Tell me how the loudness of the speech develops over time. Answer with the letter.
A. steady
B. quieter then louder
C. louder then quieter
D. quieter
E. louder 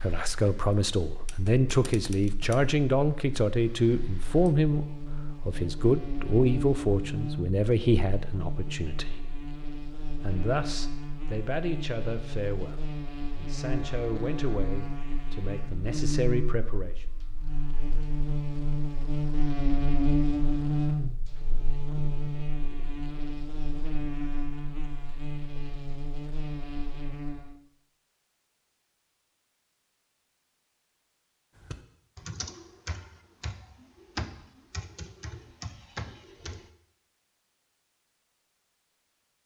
D.